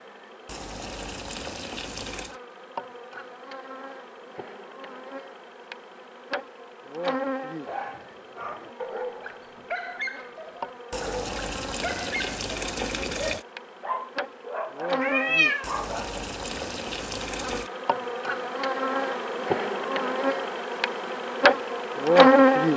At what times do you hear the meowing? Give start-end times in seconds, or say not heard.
15.0-15.7.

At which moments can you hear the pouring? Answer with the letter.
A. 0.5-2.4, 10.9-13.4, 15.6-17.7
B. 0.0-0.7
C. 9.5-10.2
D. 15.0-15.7
A.